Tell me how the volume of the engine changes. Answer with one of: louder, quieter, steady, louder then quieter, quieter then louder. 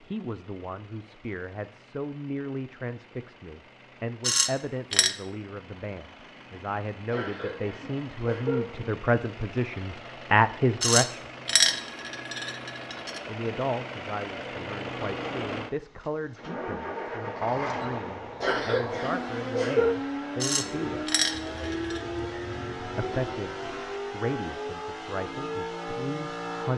louder.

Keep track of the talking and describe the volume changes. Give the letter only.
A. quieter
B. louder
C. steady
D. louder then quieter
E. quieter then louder
D.